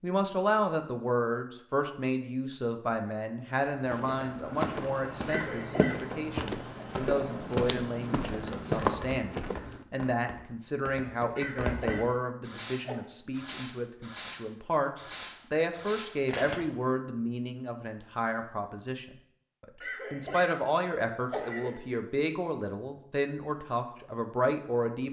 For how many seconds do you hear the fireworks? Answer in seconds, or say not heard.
12 s.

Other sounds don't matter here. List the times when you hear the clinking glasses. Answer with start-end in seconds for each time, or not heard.
not heard.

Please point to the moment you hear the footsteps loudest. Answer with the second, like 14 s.
9 s.